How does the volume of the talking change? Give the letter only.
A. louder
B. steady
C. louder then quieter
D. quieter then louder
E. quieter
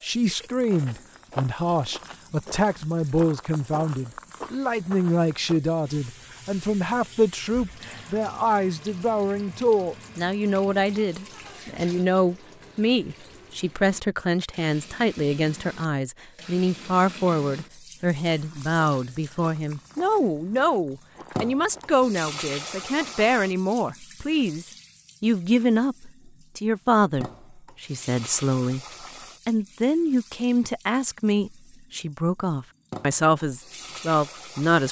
B.